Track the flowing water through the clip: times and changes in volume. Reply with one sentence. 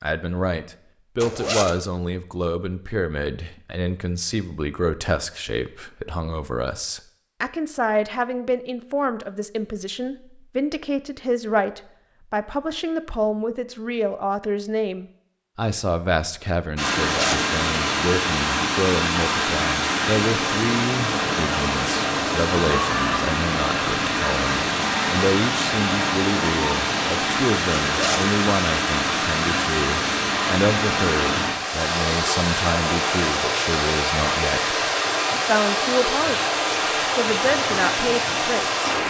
The flowing water can be heard from 16.8 to 39.0 s, at a steady volume.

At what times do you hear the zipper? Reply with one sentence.
You can hear the zipper from 1.2 to 1.8 s, from 17.0 to 17.5 s and from 27.9 to 28.4 s.